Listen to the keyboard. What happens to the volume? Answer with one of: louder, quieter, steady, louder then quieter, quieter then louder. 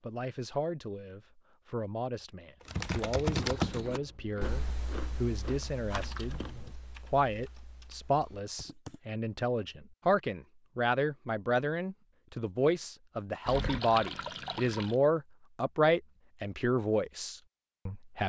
quieter.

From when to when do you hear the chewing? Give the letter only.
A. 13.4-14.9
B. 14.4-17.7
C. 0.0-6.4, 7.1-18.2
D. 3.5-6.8
D.